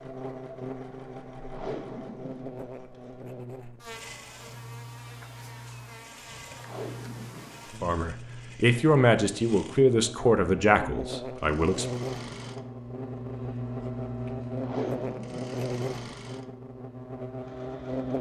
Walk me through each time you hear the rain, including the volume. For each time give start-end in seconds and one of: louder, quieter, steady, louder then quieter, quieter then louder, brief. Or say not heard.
not heard.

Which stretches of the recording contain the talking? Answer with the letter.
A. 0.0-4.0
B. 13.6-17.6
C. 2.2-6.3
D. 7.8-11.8
D.